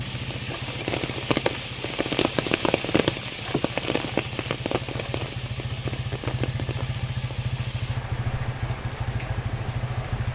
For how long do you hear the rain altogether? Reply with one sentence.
You can hear the rain for 10 seconds altogether.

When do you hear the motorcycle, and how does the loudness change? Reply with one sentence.
You can hear the motorcycle from 0.0 to 10.3 s, getting louder.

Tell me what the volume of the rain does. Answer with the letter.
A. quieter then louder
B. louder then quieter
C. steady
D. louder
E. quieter
E.